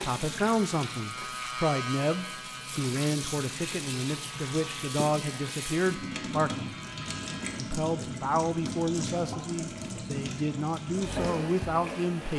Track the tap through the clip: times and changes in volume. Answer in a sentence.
You can hear the tap from 0.0 to 12.3 s, getting louder.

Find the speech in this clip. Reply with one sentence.
You can hear the speech from 0.0 to 6.7 s and from 7.5 to 12.3 s.